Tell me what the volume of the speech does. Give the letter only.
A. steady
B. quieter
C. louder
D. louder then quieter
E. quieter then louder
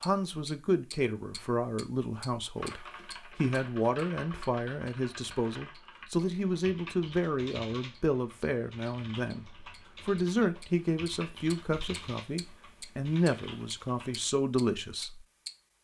A.